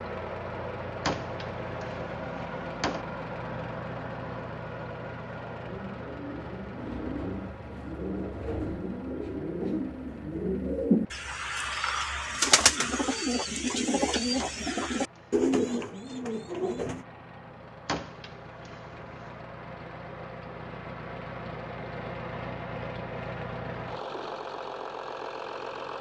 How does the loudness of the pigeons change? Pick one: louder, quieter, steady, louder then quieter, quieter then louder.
louder.